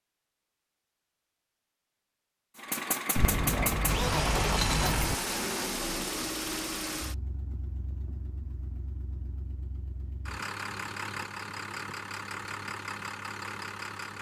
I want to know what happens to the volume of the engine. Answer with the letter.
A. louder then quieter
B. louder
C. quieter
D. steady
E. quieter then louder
E.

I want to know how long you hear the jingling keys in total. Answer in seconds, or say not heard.
2 s.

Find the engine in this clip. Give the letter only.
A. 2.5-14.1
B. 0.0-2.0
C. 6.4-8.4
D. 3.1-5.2
A.